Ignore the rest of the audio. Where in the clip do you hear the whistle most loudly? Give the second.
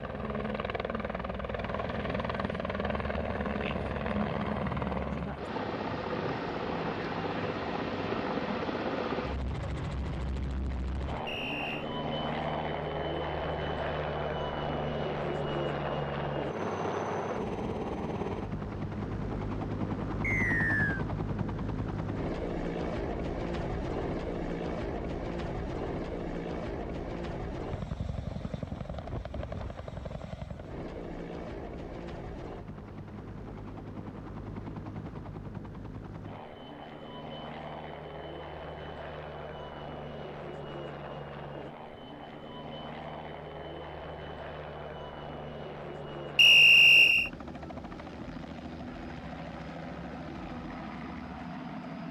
47 s.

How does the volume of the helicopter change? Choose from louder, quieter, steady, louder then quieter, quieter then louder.
quieter.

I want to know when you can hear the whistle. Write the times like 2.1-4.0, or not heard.
11.2-11.8, 20.2-21.1, 46.4-47.3.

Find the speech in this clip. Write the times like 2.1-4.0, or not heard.
not heard.